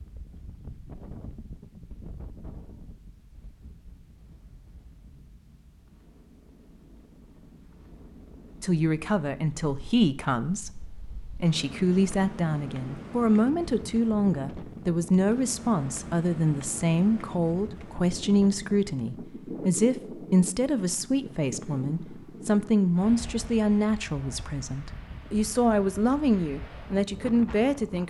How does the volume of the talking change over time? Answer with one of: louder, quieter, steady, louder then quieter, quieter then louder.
steady.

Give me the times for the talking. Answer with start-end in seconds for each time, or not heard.
8.6-28.0.